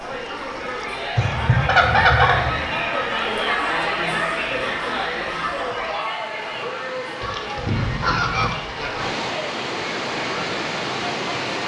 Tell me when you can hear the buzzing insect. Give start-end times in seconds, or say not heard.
not heard.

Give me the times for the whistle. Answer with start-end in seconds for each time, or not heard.
not heard.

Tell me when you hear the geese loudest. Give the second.
2 s.